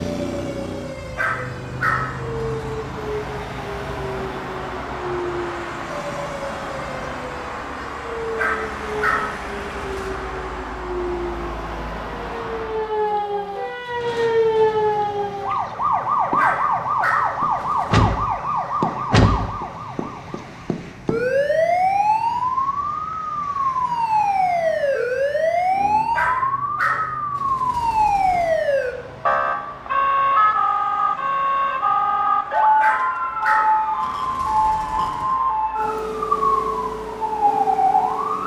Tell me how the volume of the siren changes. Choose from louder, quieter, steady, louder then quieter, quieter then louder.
louder.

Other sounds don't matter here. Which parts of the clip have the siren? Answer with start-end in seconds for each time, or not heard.
0.0-38.4.